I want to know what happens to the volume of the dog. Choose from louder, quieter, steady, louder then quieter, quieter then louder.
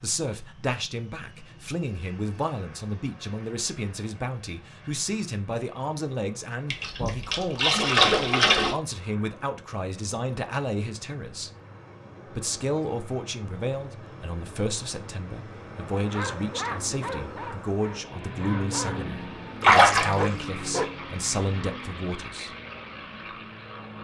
quieter then louder.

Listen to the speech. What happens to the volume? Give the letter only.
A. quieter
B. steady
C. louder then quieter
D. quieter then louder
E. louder
B.